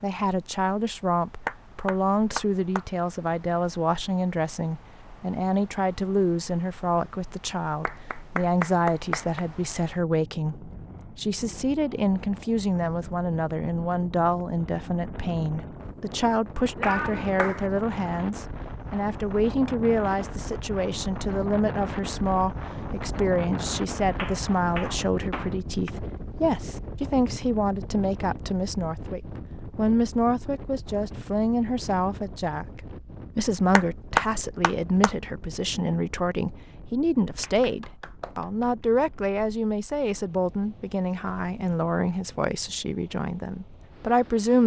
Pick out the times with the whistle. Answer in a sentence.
The whistle can't be heard in this clip.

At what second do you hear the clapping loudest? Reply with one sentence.
The volume of the clapping peaks at 34 seconds.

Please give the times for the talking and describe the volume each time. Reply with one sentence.
The talking can be heard from 0.0 to 44.6 s, at a steady volume.